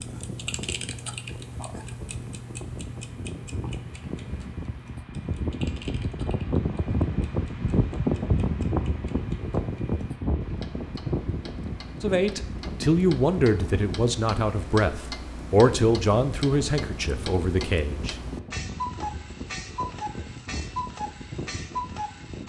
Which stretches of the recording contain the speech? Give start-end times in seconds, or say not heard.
12.0-18.1.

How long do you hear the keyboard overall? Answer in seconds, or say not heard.
not heard.